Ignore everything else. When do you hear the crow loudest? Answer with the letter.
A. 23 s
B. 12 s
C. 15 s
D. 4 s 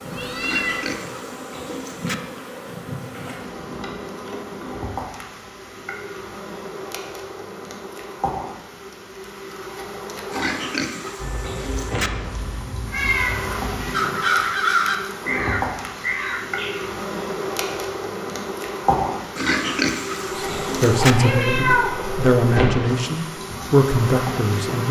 C.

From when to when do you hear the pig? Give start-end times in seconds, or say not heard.
0.4-2.1, 10.3-12.1, 19.4-21.1.